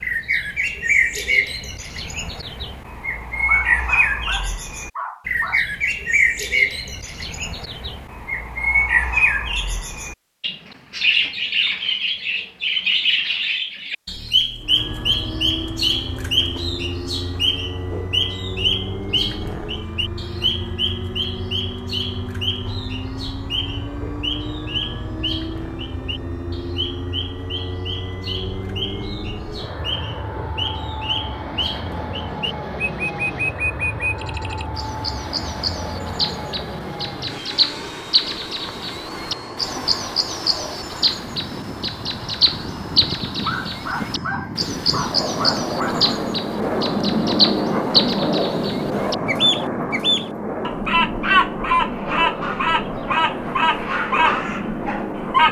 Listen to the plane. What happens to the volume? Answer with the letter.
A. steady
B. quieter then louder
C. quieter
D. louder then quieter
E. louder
E.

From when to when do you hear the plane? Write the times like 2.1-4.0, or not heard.
14.6-55.4.